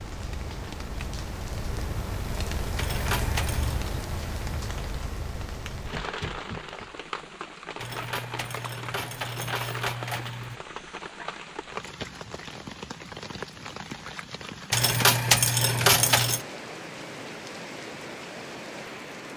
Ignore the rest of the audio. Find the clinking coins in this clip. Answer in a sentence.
The clinking coins can be heard from 2.8 to 3.8 s, from 7.8 to 10.6 s and from 14.7 to 16.4 s.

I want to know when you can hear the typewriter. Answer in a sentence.
You can't hear the typewriter here.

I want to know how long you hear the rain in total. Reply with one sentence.
The rain can be heard for 19 seconds in total.